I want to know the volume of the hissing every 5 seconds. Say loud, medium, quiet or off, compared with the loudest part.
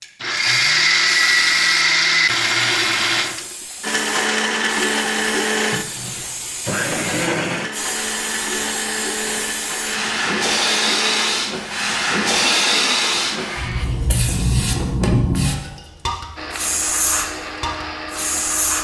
quiet, medium, loud, loud.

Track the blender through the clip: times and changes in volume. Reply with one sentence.
You can hear the blender from 0.0 to 13.8 s, getting quieter; and briefly from 16.4 to 18.7 s.